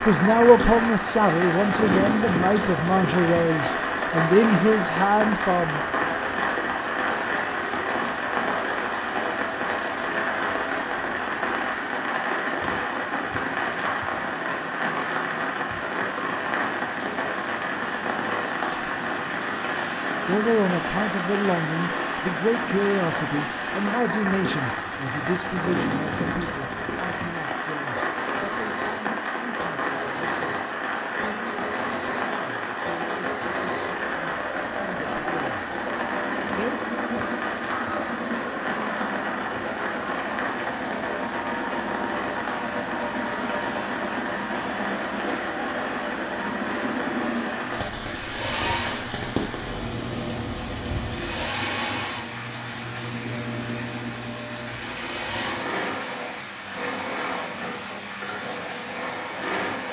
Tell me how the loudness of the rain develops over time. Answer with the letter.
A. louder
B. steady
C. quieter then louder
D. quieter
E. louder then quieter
D.